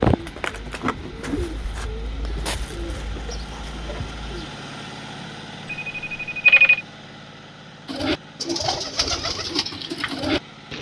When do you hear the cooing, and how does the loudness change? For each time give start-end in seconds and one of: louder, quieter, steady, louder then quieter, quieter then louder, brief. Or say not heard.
0.0-4.6 quieter
7.8-10.7 brief.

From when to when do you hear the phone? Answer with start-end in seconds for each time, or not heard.
5.8-6.8.